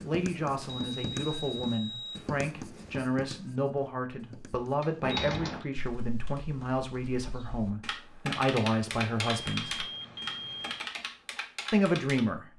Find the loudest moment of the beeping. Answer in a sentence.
The loudest moment of the beeping is at 5 seconds.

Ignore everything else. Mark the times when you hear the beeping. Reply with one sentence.
You can hear the beeping from 0.7 to 2.2 s, from 5.0 to 5.7 s and from 8.9 to 10.9 s.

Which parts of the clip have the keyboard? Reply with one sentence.
You can hear the keyboard from 4.8 to 12.2 s.